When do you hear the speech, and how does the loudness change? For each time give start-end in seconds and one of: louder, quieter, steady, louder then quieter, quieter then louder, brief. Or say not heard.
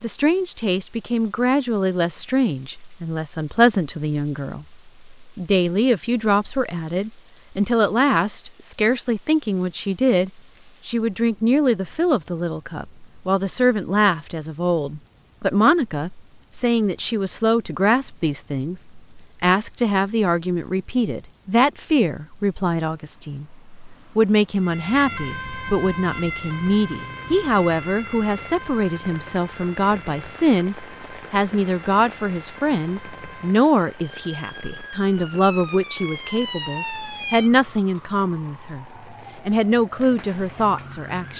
0.0-38.9 steady
39.5-41.3 brief.